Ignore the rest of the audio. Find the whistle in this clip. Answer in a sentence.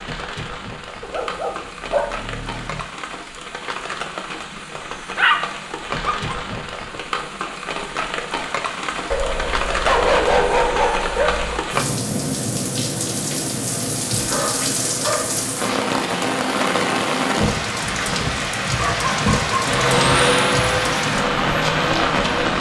You can't hear the whistle here.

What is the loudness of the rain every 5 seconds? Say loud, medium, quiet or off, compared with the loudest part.
medium, medium, loud, loud, loud.